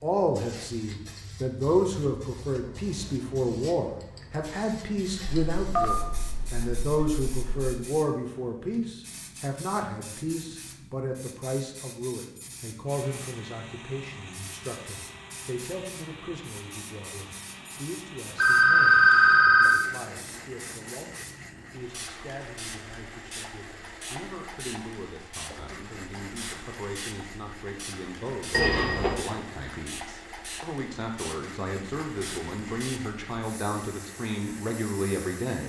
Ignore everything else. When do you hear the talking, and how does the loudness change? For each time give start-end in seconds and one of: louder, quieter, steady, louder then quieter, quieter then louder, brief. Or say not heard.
0.0-35.6 quieter then louder.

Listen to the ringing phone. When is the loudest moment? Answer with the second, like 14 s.
19 s.